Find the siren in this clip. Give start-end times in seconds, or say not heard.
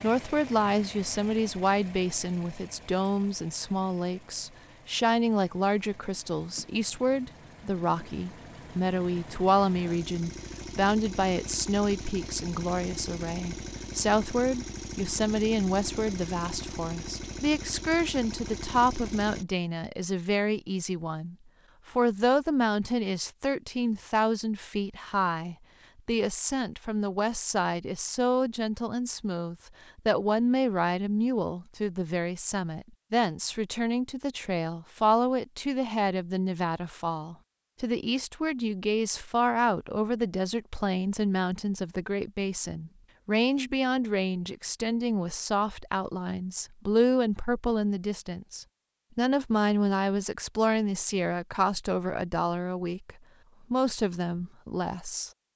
not heard.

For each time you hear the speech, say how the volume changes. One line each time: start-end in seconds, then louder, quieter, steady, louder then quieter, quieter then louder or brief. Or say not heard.
0.0-55.3 steady.